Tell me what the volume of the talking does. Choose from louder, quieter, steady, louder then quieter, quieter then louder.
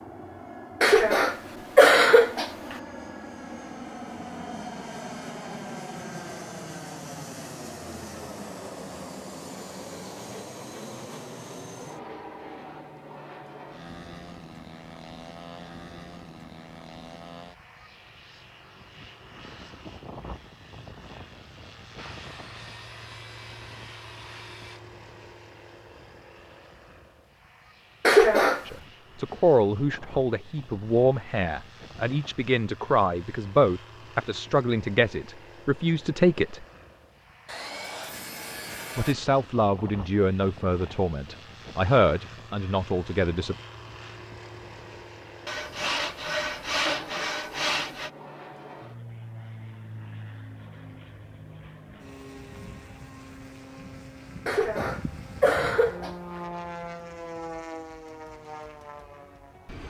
steady.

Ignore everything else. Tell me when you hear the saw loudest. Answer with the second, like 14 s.
47 s.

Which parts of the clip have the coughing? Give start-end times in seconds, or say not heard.
0.8-2.8, 28.0-28.6, 54.5-56.4.